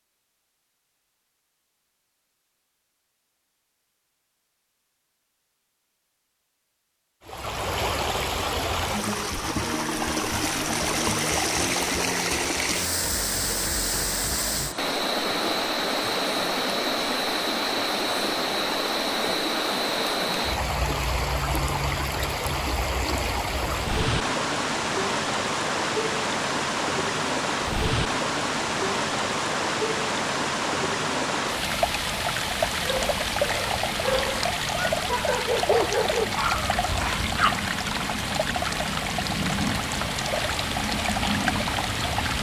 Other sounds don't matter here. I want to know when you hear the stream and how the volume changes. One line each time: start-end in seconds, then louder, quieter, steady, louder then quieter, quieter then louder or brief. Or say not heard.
7.2-42.3 steady.